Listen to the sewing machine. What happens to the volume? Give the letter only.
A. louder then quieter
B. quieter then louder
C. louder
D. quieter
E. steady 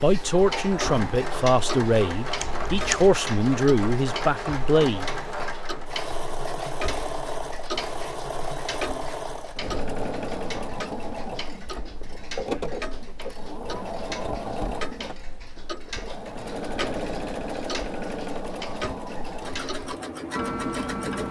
E.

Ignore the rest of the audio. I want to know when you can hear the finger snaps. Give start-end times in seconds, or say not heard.
not heard.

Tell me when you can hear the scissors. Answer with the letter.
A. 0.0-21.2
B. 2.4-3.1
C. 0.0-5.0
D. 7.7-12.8
B.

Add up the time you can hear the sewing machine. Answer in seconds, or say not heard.
21 s.